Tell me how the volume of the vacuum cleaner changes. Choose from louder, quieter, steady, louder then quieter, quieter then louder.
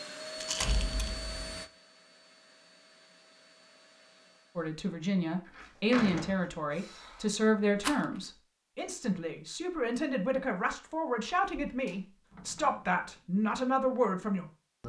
quieter.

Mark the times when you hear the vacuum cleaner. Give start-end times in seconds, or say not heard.
0.0-4.8.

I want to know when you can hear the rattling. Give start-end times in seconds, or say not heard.
0.3-1.1, 7.8-8.2.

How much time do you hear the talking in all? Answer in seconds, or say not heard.
10 s.